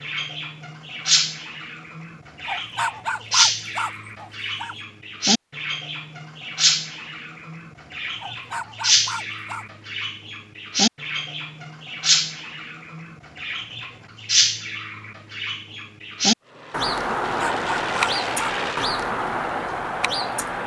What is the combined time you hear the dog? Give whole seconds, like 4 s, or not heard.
5 s.